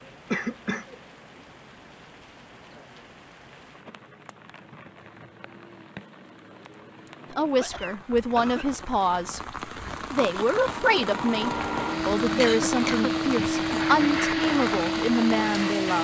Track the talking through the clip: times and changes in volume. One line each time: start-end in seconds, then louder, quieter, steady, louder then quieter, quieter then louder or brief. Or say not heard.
7.3-9.4 brief
10.1-15.9 steady.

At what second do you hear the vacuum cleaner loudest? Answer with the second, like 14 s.
14 s.